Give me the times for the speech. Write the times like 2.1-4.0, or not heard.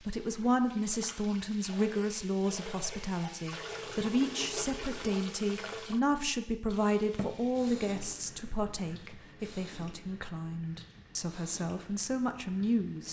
0.1-13.0.